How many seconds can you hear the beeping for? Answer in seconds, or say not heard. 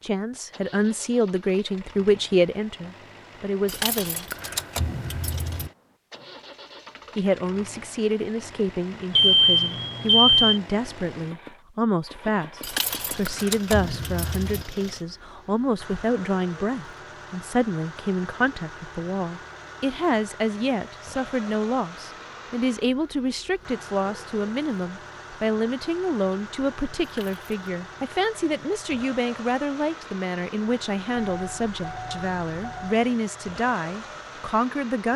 3 s.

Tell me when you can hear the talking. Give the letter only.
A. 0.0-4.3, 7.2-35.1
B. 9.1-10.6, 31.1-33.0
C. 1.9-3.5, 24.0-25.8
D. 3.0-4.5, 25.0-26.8
A.